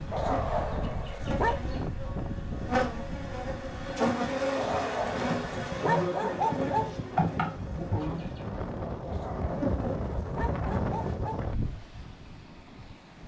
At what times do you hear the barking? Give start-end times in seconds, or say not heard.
0.1-1.6, 4.5-7.0, 9.1-11.4.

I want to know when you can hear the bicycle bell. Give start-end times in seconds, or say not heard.
not heard.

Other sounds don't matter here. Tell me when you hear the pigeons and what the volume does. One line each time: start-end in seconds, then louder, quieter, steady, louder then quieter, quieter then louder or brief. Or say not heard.
not heard.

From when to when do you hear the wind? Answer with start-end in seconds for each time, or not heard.
0.0-13.2.